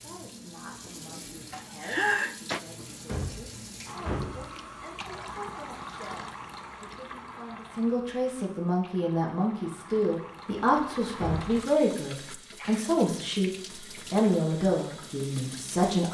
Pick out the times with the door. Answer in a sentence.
The door can be heard from 2.8 to 4.5 s and from 10.9 to 11.6 s.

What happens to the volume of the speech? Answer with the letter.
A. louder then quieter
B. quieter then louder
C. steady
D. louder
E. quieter
D.